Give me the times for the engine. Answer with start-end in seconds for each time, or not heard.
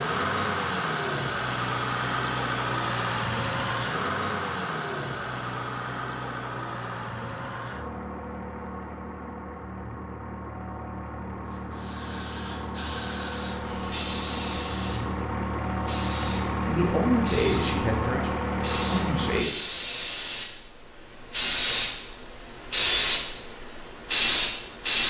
0.0-19.4.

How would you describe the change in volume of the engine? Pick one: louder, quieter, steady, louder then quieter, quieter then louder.
quieter then louder.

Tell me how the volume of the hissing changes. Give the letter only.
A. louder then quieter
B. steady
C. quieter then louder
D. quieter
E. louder
E.